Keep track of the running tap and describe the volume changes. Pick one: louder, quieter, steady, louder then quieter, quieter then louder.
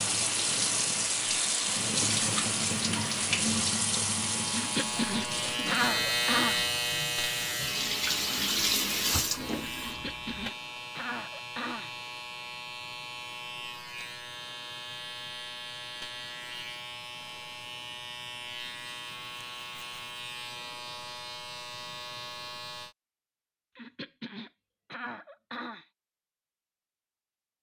quieter then louder.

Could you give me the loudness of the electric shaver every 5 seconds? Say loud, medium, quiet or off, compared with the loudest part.
medium, loud, medium, medium, medium, off.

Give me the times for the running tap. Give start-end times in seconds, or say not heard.
0.0-10.5.